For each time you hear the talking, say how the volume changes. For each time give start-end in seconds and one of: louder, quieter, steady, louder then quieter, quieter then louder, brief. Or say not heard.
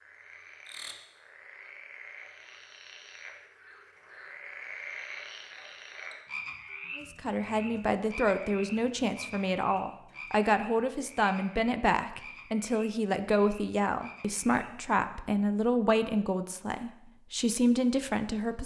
7.0-18.6 steady.